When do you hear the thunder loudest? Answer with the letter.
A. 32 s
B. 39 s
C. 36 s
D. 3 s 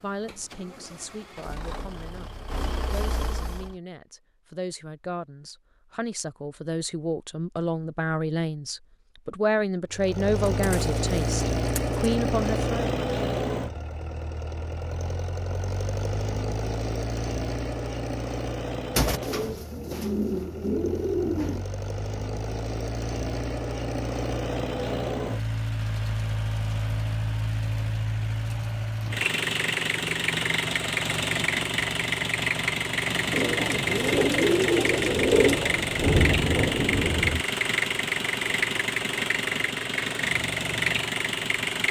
C.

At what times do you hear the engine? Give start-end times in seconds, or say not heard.
0.0-3.8, 9.9-41.8.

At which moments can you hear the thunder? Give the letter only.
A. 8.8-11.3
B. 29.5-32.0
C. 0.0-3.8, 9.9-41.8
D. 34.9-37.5
D.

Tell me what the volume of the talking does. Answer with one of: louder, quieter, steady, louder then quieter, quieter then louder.
louder.